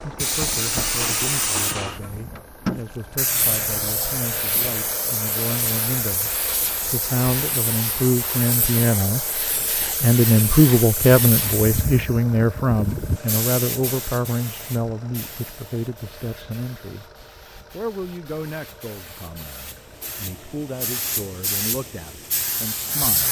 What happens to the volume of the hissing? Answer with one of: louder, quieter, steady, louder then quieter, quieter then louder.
quieter then louder.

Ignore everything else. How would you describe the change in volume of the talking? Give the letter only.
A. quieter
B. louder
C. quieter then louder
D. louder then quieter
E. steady
D.